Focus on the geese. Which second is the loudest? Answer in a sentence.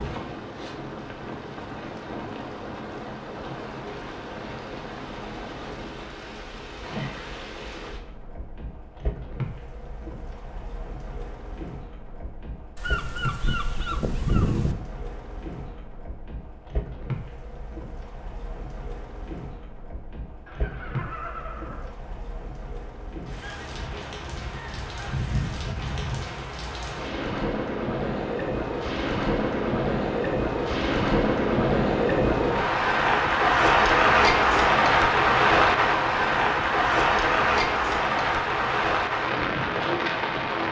The volume of the geese peaks at 14 seconds.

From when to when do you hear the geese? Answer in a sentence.
You can hear the geese from 12.8 to 14.8 s and from 23.4 to 26.2 s.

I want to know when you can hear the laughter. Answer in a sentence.
You can hear the laughter from 20.4 to 21.9 s.